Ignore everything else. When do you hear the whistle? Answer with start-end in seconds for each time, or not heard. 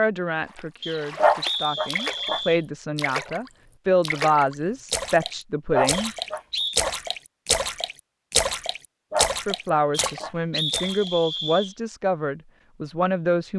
0.8-2.6, 5.9-6.8, 9.9-11.8.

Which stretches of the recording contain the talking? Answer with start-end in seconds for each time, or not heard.
0.0-6.2, 9.4-13.5.